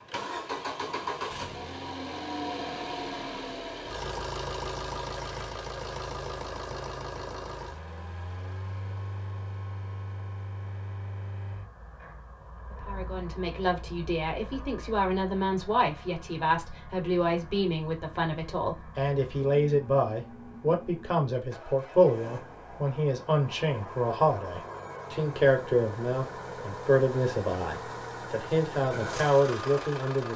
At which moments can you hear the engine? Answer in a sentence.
You can hear the engine from 0.0 to 30.3 s.